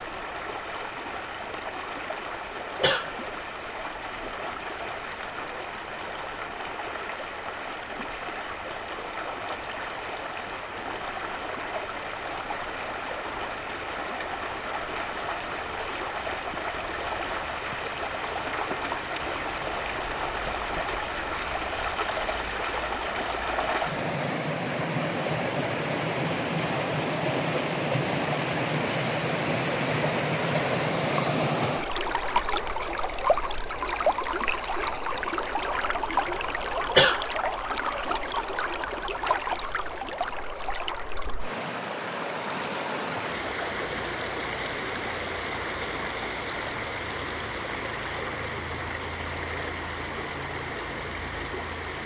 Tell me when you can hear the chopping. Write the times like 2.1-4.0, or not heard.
not heard.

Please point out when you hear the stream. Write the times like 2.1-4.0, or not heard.
0.0-52.0.